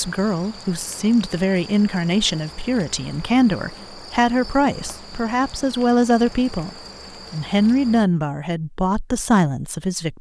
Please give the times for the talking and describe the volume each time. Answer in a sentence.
The talking can be heard from 0.0 to 10.1 s, at a steady volume.